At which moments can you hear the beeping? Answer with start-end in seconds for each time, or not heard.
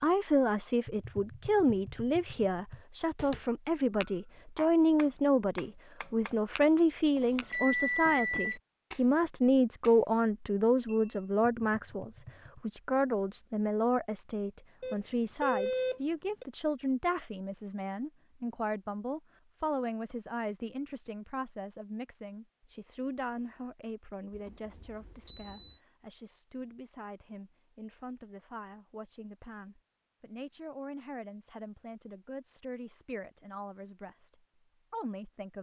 7.2-8.6, 14.8-16.4, 24.3-25.8.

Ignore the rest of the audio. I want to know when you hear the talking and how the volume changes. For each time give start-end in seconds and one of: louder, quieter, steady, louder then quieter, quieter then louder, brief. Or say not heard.
0.0-35.5 quieter.